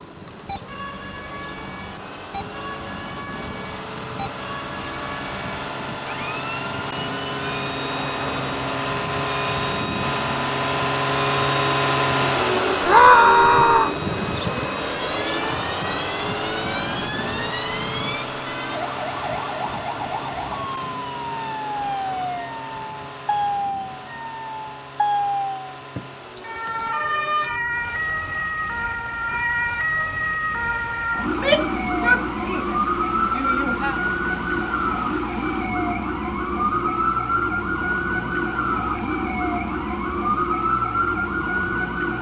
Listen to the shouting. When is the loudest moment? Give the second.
13 s.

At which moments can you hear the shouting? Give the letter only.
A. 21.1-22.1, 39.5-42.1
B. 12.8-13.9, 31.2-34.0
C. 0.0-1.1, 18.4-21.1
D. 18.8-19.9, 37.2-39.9
B.